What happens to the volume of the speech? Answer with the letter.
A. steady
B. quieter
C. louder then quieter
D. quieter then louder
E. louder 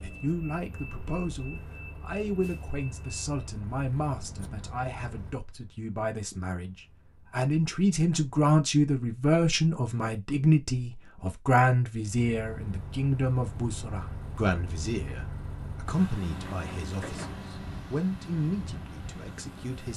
C.